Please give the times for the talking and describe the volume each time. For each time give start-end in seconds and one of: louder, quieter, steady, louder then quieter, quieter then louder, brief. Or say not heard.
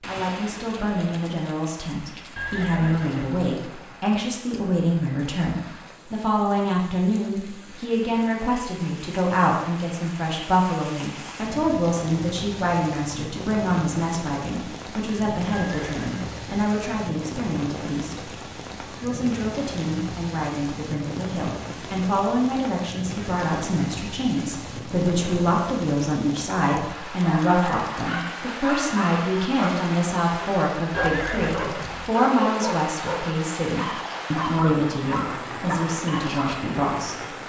0.0-37.4 steady.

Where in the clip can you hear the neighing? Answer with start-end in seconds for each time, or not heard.
2.4-3.5, 15.5-16.6, 30.9-32.1.